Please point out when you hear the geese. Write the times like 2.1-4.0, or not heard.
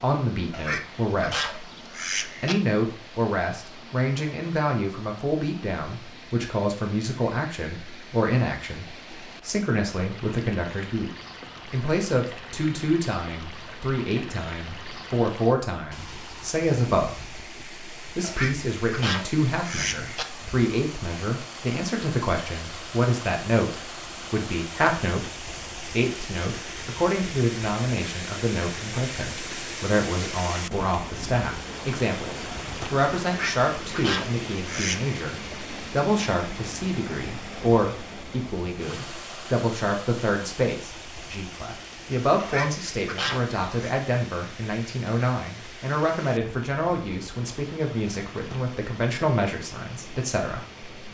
0.5-2.5, 18.2-20.2, 33.2-35.1, 42.4-44.0.